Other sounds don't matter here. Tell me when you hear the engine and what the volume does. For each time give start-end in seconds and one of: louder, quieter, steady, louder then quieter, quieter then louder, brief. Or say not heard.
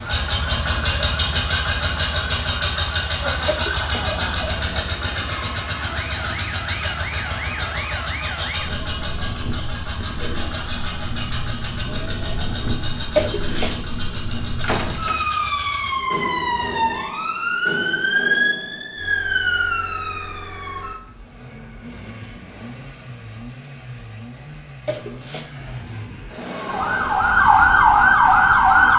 0.0-28.9 quieter.